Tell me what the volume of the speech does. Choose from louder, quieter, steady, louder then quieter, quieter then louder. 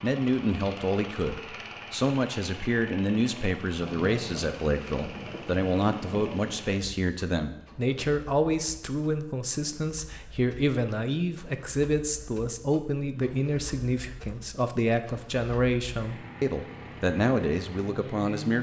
steady.